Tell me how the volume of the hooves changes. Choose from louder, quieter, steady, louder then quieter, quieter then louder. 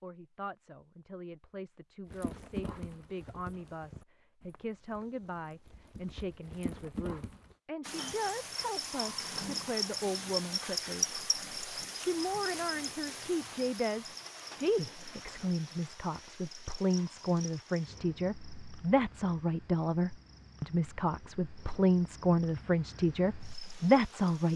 quieter then louder.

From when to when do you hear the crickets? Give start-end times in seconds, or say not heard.
7.8-24.5.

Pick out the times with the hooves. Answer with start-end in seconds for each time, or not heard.
2.0-7.5.